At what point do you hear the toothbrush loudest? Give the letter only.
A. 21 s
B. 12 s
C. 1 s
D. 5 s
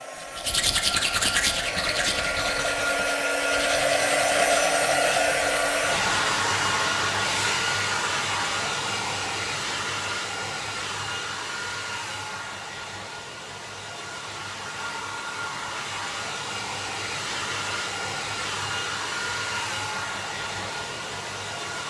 C.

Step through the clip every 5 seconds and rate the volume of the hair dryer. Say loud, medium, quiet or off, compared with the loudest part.
loud, loud, medium, medium, medium.